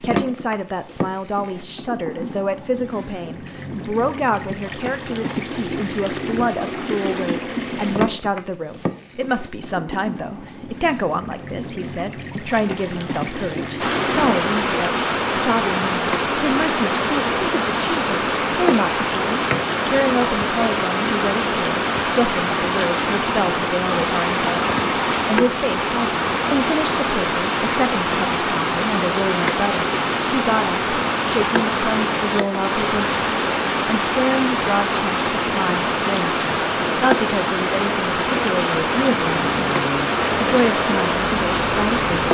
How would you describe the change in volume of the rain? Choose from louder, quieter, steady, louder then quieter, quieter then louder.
steady.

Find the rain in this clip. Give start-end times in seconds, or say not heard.
13.8-42.3.